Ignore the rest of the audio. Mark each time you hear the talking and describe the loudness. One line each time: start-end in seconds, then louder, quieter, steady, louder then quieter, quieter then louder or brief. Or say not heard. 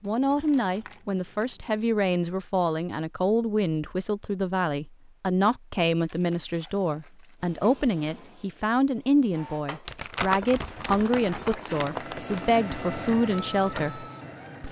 0.0-14.6 steady.